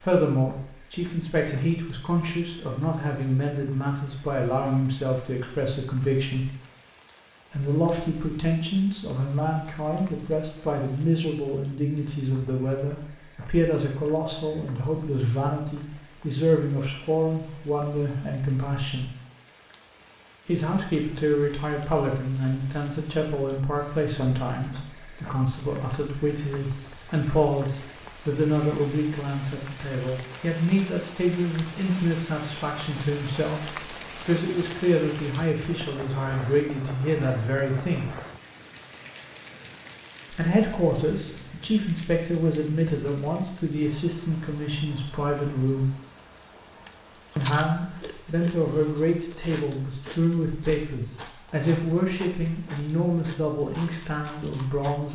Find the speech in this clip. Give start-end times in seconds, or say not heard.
0.0-6.5, 7.5-19.1, 20.4-38.1, 40.3-45.9, 47.4-55.0.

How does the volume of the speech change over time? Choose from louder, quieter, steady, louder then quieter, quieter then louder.
steady.